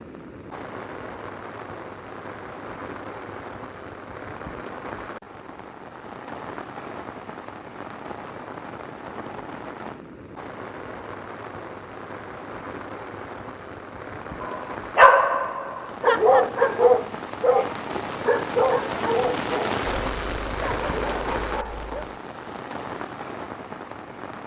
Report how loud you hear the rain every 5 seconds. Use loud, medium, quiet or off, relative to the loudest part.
medium, medium, medium, loud, loud.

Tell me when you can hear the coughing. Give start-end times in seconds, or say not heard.
not heard.